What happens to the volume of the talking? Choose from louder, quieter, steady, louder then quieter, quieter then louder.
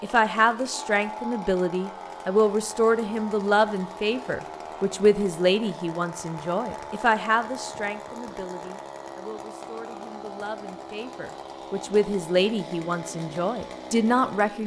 quieter then louder.